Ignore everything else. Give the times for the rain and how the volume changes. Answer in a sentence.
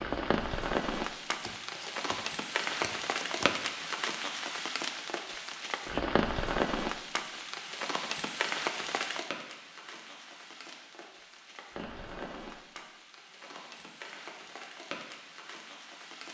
The rain can be heard from 0.0 to 16.3 s, getting quieter.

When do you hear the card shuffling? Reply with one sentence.
The card shuffling can be heard from 1.2 to 3.6 s.